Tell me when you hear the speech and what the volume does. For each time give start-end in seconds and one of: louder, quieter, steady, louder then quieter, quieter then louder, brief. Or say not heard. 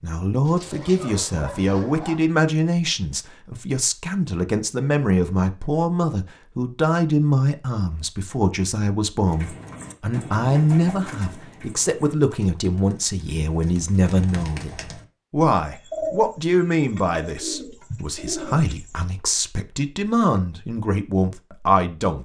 0.0-22.1 steady.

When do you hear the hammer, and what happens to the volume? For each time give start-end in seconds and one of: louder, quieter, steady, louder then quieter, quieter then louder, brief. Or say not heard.
not heard.